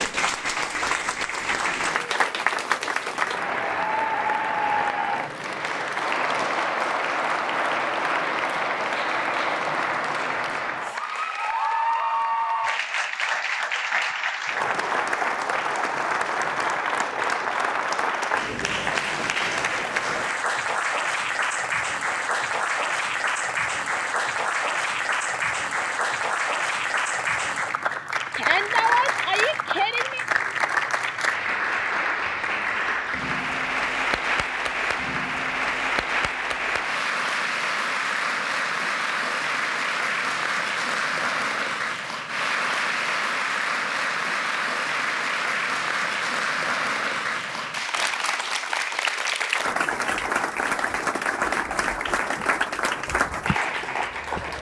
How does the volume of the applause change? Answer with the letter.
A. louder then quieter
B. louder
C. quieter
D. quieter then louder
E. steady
E.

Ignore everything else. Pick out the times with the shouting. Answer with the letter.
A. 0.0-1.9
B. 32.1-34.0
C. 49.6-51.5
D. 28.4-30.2
D.